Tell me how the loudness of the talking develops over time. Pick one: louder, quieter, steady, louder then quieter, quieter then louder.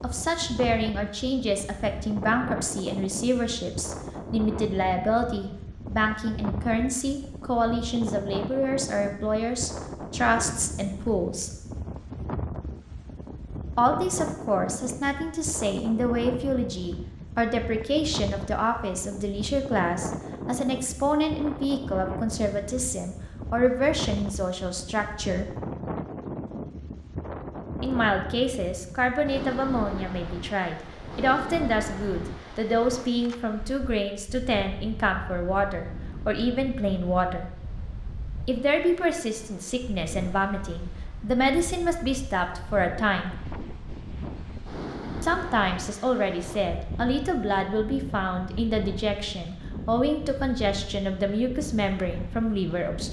steady.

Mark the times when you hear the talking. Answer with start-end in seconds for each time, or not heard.
0.0-11.5, 13.8-25.6, 27.8-37.5, 38.5-43.4, 45.2-53.0.